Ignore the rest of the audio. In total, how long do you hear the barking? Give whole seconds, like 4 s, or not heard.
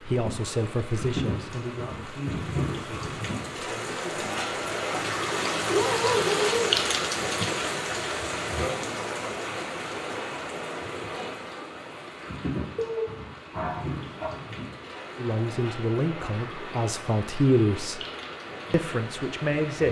3 s.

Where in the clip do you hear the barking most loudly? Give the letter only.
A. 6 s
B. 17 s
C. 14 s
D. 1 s
A.